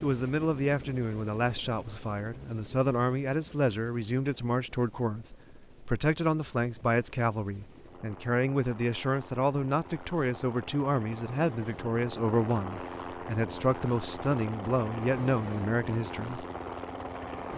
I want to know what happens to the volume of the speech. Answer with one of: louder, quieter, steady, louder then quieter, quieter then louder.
steady.